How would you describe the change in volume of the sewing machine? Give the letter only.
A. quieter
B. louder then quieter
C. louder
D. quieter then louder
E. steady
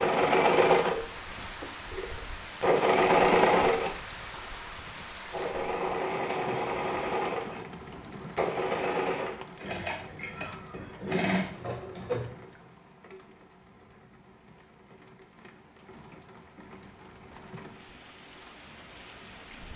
A.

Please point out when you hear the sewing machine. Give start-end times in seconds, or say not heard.
0.0-12.3.